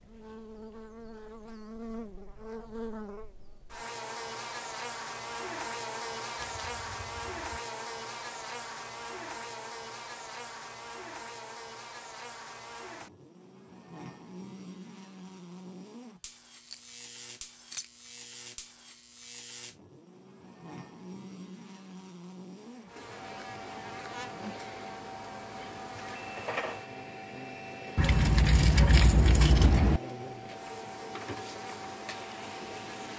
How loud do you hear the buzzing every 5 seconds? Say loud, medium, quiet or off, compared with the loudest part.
loud, loud, medium, medium, medium, medium, medium.